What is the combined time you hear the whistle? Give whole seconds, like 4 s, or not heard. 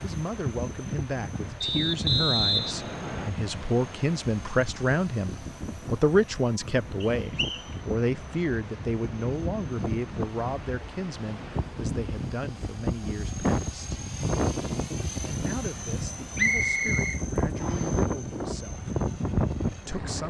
4 s.